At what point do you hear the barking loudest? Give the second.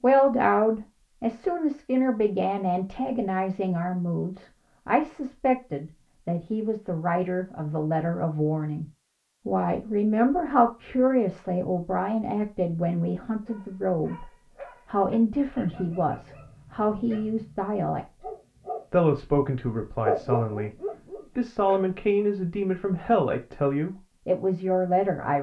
20 s.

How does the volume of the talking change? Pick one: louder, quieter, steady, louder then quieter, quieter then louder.
steady.